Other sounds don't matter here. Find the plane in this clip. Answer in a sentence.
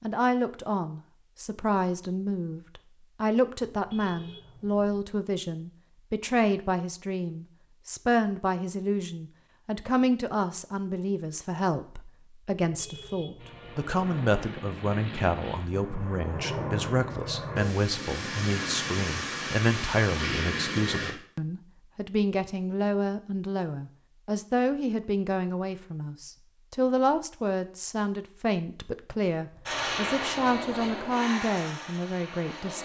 You can hear the plane from 13.3 to 21.1 s and from 29.6 to 32.8 s.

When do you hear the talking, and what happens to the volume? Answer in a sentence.
You can hear the talking from 0.0 to 32.8 s, at a steady volume.